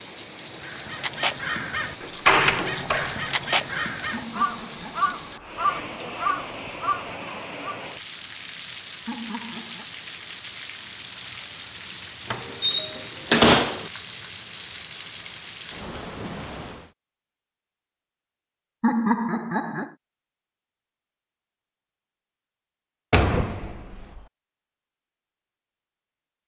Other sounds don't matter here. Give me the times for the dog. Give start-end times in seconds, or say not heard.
not heard.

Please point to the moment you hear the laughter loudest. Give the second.
19 s.